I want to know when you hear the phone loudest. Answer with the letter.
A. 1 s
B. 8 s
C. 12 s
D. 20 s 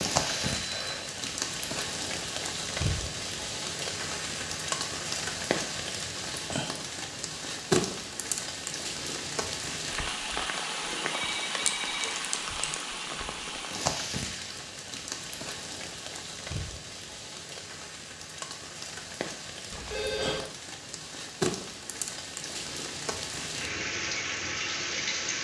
D.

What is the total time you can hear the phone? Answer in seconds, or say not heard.
3 s.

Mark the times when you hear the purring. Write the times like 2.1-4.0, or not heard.
not heard.